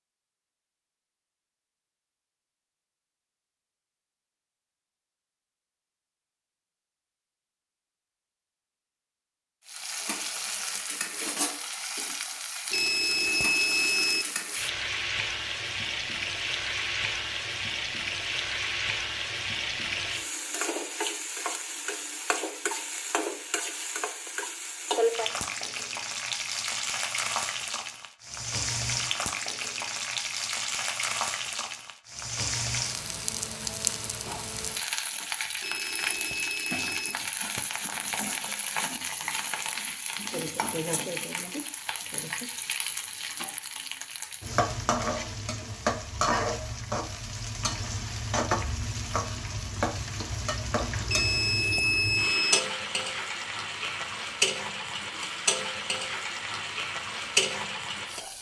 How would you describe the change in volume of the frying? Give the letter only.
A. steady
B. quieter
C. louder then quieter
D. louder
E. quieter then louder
A.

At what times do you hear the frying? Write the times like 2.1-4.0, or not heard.
9.7-58.3.